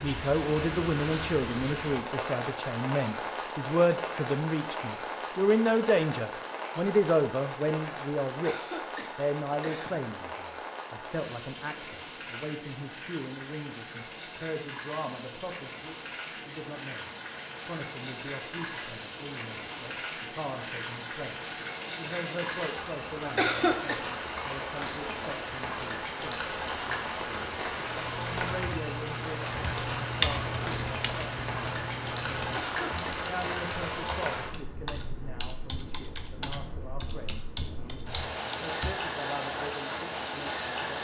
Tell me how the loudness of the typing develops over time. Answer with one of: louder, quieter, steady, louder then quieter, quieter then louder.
quieter.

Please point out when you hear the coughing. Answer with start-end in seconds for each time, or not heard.
8.4-10.0, 23.4-23.9, 32.5-33.1.